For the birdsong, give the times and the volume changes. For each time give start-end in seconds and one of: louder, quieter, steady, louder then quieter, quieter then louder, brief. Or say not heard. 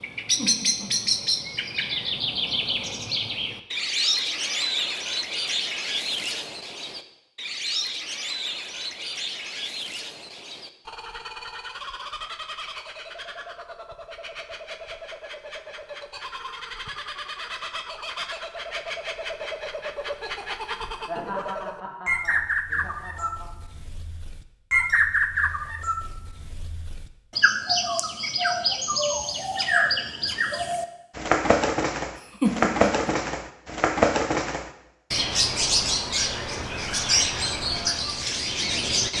0.0-39.1 quieter then louder.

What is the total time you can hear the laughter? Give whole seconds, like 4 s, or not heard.
4 s.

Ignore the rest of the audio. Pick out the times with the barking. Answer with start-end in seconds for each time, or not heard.
not heard.